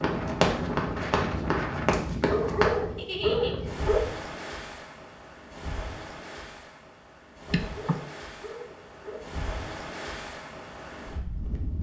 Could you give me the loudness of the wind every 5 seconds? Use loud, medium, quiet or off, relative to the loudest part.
loud, medium, medium.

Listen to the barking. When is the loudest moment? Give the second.
3 s.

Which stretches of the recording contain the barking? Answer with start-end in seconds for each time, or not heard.
2.2-4.0, 7.5-9.2.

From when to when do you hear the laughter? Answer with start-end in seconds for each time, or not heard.
3.0-3.5, 7.5-8.0.